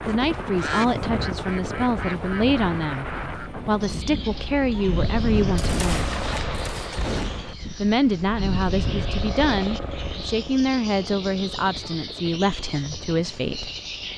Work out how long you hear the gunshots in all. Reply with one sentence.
You can hear the gunshots for 2 seconds altogether.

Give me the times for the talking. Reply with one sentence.
The talking can be heard from 0.0 to 6.1 s and from 7.7 to 13.7 s.